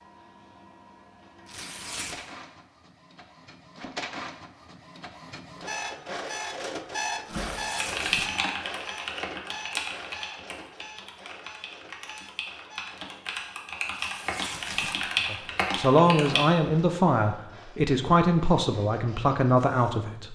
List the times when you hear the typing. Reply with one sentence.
You can hear the typing from 7.3 to 16.4 s.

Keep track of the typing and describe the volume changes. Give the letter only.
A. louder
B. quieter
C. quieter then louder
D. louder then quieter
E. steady
C.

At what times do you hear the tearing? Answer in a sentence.
The tearing can be heard from 1.4 to 2.2 s, from 7.2 to 8.4 s and from 13.9 to 15.1 s.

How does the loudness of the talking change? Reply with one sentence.
The loudness of the talking stays about the same.